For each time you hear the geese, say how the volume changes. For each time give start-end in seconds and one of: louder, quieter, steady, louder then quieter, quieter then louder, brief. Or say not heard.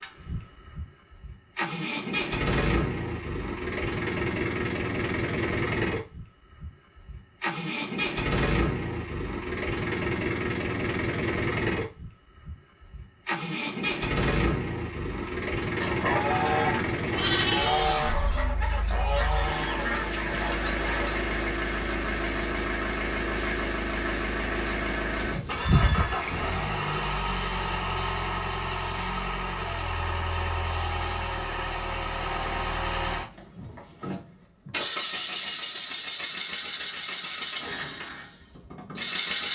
15.2-21.3 quieter.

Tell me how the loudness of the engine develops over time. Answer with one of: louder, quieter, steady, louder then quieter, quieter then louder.
steady.